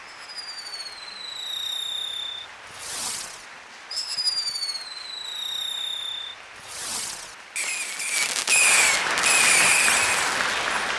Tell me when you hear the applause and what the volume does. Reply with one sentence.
You can hear the applause from 0.0 to 10.9 s, getting louder.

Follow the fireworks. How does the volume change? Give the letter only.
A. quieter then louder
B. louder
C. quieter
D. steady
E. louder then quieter
B.